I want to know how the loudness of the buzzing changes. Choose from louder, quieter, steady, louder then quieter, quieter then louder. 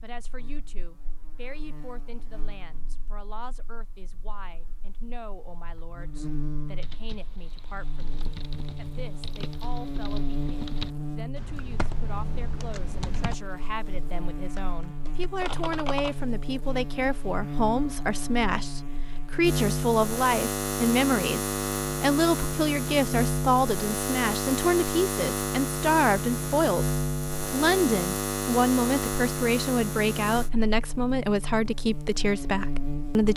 louder.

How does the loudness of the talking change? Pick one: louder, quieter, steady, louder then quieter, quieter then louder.
louder.